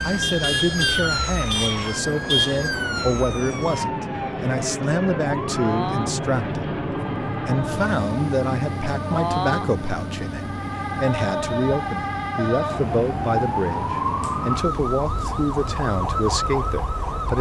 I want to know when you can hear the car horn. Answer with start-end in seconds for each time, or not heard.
0.2-2.6.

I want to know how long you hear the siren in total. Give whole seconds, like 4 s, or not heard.
17 s.